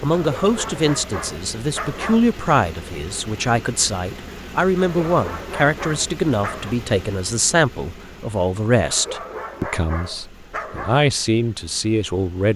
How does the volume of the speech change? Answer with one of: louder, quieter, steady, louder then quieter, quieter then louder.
steady.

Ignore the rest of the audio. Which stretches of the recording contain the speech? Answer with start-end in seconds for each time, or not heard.
0.0-12.5.